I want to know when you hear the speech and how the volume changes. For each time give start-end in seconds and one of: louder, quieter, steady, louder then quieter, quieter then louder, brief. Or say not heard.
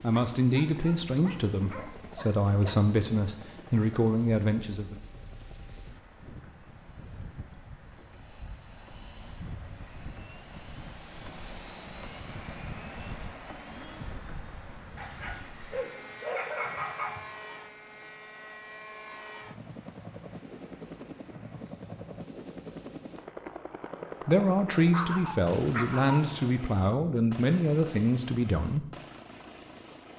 0.0-5.0 quieter then louder
24.2-28.9 steady.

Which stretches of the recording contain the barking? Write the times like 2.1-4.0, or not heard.
0.1-2.8, 14.9-17.2, 24.9-26.5.